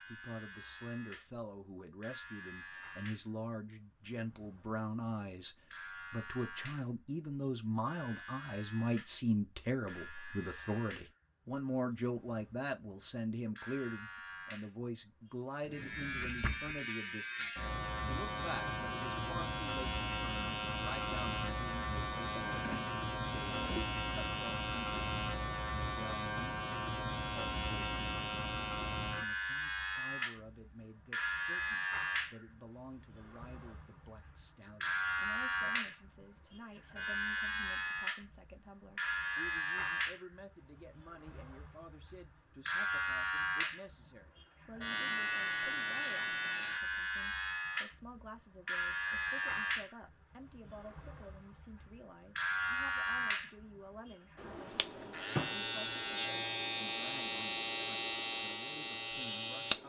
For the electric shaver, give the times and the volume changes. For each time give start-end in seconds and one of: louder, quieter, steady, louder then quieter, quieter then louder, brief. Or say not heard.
0.0-59.8 louder.